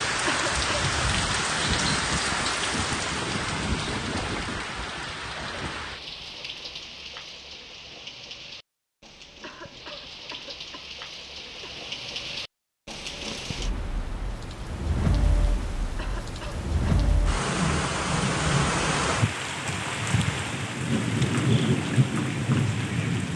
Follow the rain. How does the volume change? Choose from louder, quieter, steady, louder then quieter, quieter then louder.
quieter then louder.